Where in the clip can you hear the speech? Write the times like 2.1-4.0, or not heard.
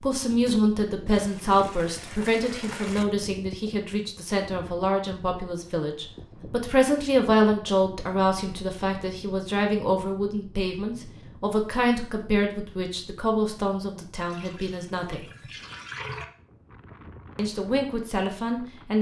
0.0-15.2, 17.4-18.9.